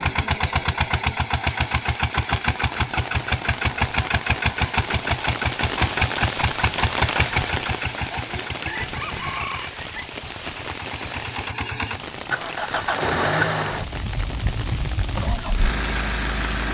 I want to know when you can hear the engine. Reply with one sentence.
You can hear the engine from 0.0 to 16.6 s.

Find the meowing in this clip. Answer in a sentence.
The meowing can't be heard in this clip.